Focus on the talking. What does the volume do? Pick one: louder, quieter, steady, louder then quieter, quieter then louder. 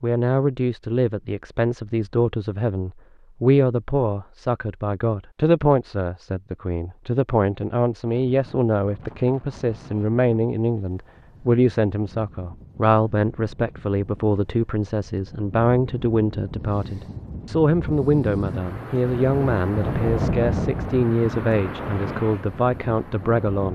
steady.